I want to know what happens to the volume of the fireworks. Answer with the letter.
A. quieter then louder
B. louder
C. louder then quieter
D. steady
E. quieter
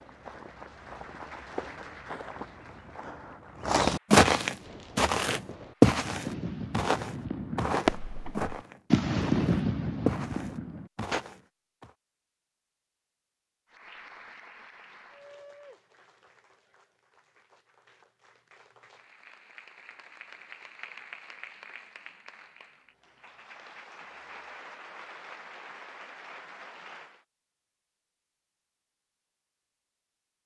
C.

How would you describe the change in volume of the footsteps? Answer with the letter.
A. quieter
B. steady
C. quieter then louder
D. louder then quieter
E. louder
D.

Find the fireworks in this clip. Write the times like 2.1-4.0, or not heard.
4.6-11.2.